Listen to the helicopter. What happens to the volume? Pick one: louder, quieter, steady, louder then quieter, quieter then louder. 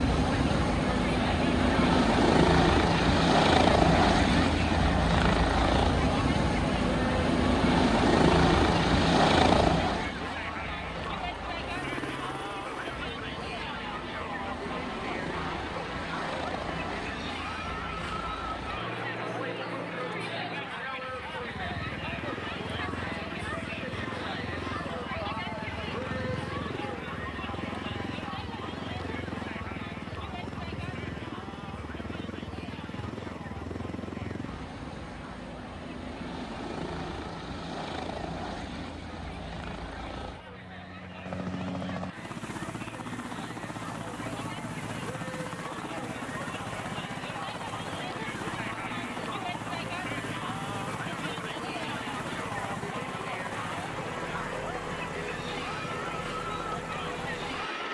quieter.